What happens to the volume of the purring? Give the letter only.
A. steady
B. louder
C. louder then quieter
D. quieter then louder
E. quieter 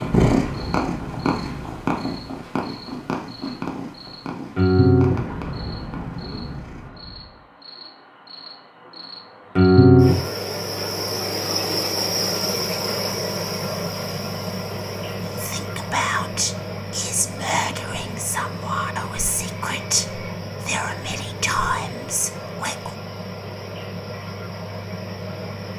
E.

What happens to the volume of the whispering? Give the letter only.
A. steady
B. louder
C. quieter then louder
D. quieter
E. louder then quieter
A.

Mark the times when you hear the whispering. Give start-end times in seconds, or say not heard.
15.2-22.9.